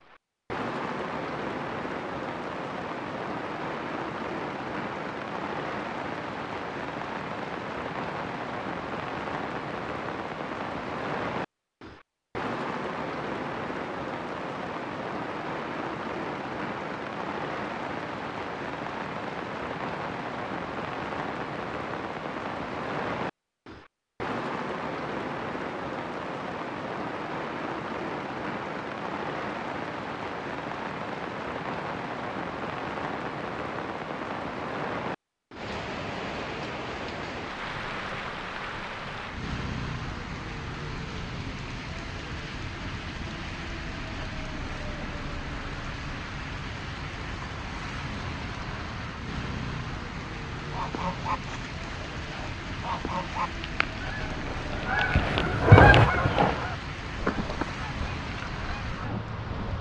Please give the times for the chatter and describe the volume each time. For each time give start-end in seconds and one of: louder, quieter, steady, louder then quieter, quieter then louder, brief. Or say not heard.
not heard.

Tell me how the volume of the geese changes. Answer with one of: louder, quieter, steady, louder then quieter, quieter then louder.
louder then quieter.